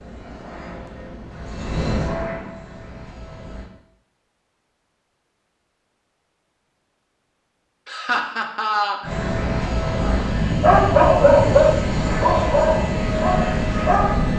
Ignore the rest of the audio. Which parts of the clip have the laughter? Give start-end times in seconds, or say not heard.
7.8-9.2.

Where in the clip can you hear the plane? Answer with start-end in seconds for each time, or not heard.
0.0-3.7, 9.0-14.3.